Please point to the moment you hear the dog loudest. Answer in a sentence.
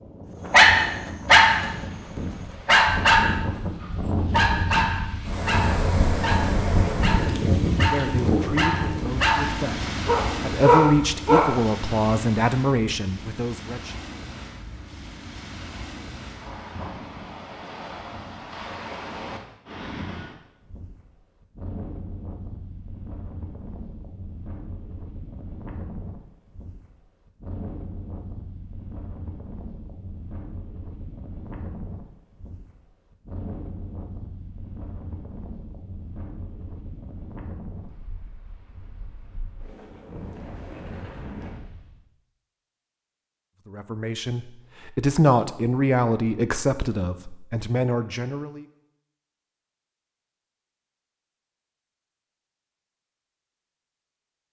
The volume of the dog peaks at 1 second.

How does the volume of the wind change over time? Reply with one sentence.
The loudness of the wind goes down.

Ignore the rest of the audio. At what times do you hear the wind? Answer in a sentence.
You can hear the wind from 0.0 to 42.0 s.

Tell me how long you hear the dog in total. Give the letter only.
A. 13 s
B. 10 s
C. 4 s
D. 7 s
B.